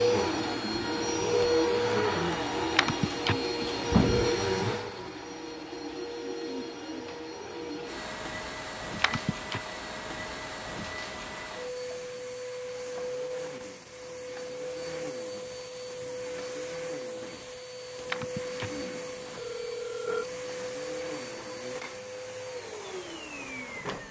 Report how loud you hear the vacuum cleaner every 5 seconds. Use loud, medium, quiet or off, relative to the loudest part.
loud, medium, medium, medium, medium.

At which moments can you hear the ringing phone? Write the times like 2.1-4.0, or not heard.
2.8-4.4, 9.0-9.6, 18.1-20.2.